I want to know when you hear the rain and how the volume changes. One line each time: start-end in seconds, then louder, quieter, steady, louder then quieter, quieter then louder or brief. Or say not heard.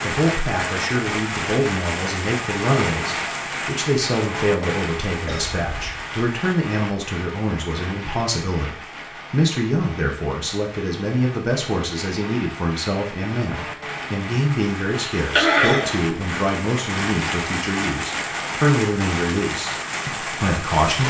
0.0-21.0 quieter then louder.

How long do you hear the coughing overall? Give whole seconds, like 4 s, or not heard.
2 s.